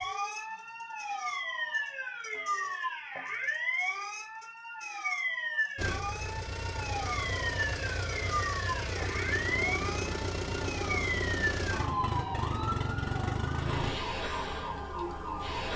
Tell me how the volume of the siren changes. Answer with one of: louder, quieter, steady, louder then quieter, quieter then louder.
steady.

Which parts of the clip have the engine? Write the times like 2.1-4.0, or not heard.
5.8-13.9.